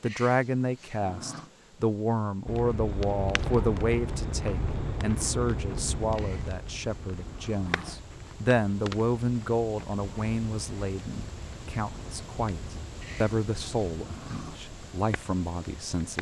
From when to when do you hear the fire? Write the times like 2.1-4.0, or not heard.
2.5-16.1.